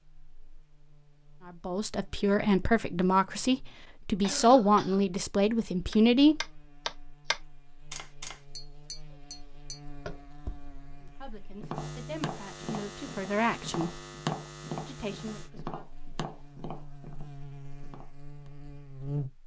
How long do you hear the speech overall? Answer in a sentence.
The speech can be heard for 9 seconds in total.